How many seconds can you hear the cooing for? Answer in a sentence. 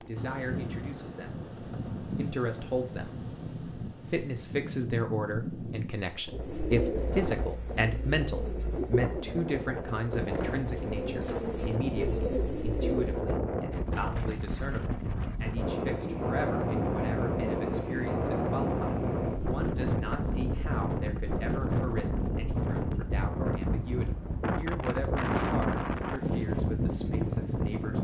You can hear the cooing for 7 seconds altogether.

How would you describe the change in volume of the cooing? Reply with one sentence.
The volume of the cooing goes down, then up.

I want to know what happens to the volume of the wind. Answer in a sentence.
The volume of the wind goes up.